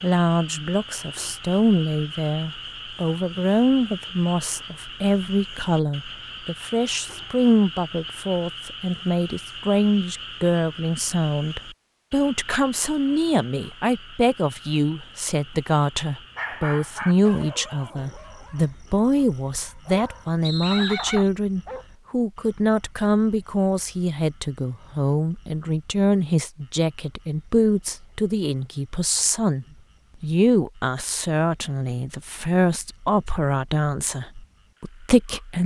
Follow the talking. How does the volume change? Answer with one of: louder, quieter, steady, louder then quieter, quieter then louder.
steady.